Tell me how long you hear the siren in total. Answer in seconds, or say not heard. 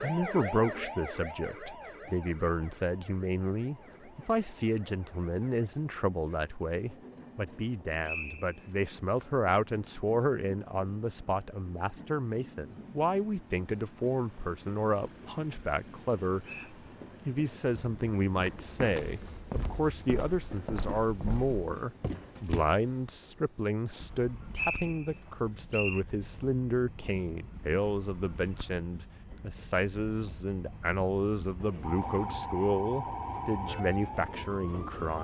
9 s.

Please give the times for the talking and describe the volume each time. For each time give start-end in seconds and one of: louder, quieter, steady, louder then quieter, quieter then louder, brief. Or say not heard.
0.0-35.2 steady.